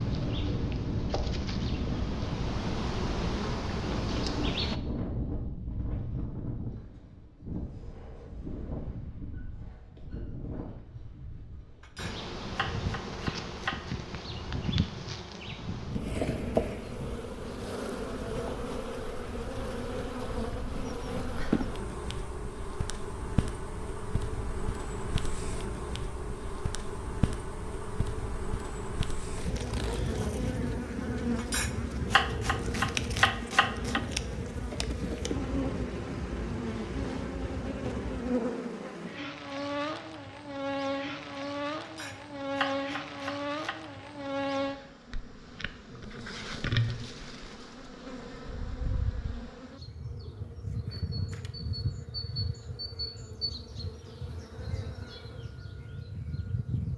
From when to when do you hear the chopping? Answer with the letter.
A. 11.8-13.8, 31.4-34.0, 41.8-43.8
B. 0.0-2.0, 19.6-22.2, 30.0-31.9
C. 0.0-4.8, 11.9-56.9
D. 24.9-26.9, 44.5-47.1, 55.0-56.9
A.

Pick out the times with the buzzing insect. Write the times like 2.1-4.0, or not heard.
0.0-4.8, 11.9-56.9.